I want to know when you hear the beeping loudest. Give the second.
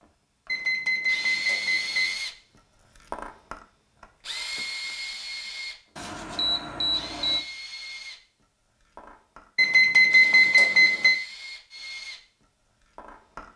10 s.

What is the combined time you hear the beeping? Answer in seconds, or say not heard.
5 s.